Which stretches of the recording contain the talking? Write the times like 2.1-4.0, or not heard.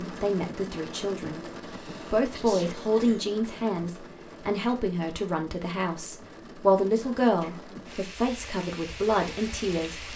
0.0-1.4, 2.1-10.1.